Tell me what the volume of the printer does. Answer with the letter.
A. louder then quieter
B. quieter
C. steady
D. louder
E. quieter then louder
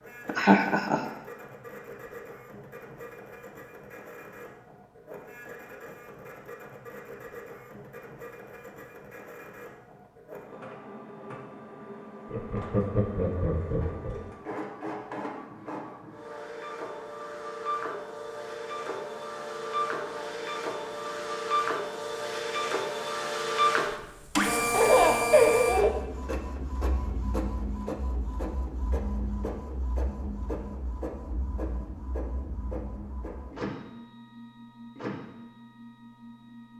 A.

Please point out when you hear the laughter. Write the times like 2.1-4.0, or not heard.
0.2-1.0, 12.3-14.2, 24.7-25.9.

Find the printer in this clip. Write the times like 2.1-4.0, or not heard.
0.0-36.7.